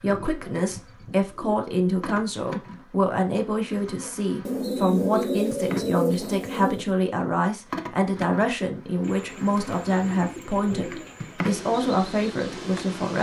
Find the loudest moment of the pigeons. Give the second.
5 s.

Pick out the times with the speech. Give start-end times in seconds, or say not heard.
0.0-13.1.